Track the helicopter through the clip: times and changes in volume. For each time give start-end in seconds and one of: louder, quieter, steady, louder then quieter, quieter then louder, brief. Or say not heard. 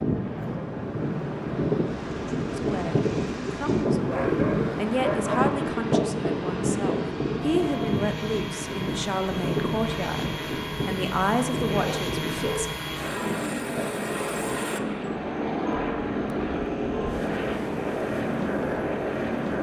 0.0-19.5 louder.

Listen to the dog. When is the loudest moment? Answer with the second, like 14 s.
5 s.